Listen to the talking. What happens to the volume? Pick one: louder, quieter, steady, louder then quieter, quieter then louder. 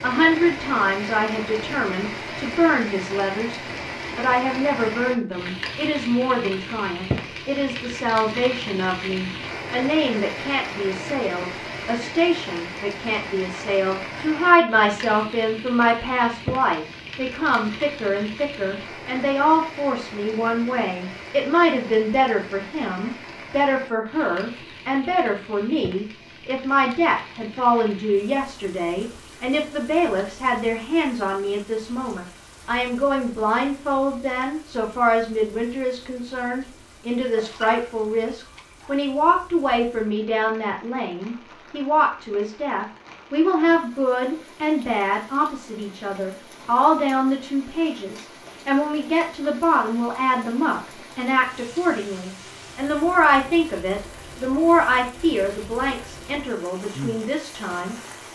steady.